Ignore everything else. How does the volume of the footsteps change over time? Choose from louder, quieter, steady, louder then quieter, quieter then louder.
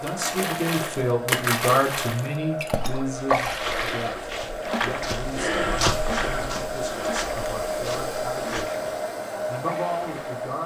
louder then quieter.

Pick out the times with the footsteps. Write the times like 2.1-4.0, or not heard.
3.1-8.7.